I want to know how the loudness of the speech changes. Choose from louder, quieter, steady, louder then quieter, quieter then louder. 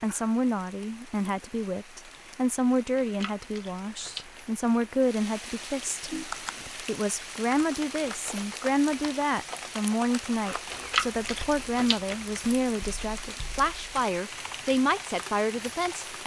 steady.